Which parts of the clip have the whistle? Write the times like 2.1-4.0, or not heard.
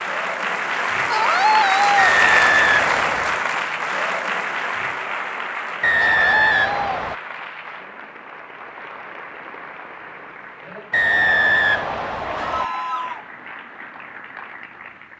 1.9-3.5, 5.8-7.2, 10.9-12.7.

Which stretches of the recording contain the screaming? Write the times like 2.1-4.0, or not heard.
1.1-2.1, 6.0-7.0, 12.3-13.2.